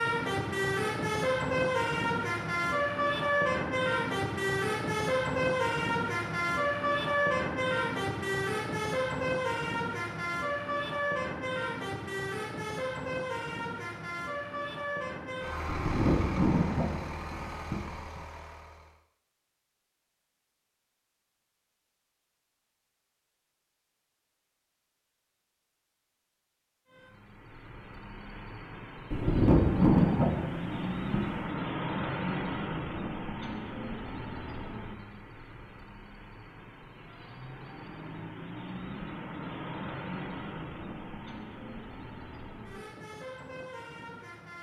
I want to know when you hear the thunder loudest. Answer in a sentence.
The volume of the thunder peaks at 30 seconds.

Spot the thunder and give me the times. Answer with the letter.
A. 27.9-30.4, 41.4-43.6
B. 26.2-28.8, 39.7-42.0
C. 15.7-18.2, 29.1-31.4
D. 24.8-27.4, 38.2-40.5
C.